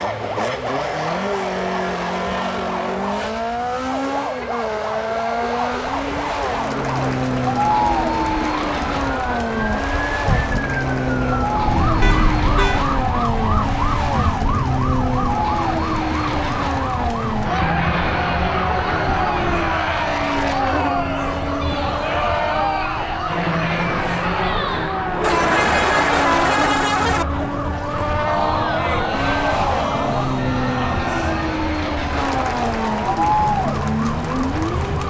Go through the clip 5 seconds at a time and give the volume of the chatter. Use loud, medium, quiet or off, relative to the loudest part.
off, loud, medium, loud, loud, loud, loud.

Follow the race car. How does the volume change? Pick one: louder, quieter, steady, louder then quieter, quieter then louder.
steady.